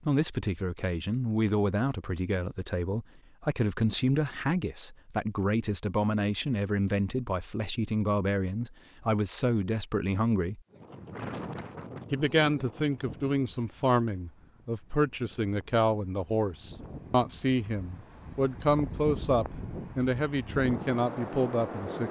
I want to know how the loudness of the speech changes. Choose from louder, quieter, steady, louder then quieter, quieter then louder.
steady.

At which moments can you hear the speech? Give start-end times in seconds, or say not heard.
0.1-10.6, 12.1-22.0.